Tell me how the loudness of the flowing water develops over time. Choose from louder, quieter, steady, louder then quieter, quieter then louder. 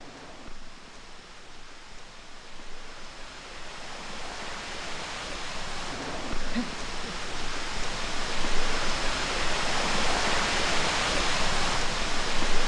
louder.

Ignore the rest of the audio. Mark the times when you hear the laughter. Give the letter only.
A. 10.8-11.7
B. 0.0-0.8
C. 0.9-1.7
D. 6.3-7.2
D.